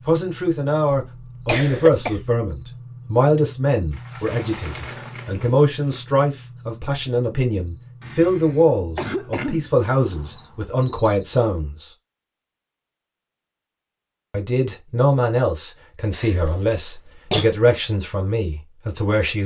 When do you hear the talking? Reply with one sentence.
The talking can be heard from 0.1 to 11.9 s and from 14.3 to 19.4 s.